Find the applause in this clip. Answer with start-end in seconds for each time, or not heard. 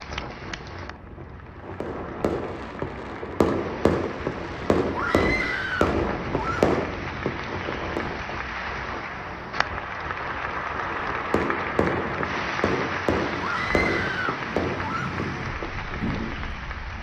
0.0-16.9.